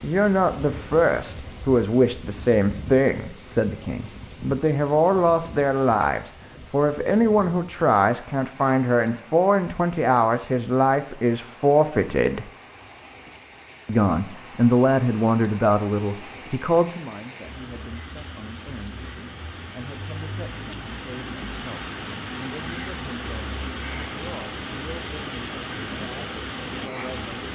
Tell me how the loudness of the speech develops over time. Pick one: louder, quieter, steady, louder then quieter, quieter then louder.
quieter.